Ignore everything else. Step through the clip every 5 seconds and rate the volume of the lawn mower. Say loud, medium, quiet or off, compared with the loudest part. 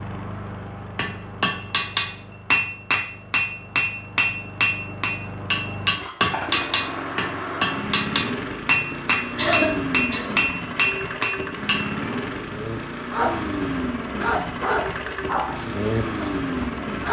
medium, loud, loud, loud.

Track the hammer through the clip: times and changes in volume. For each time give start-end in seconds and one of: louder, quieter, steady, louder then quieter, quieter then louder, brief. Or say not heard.
0.9-11.9 steady.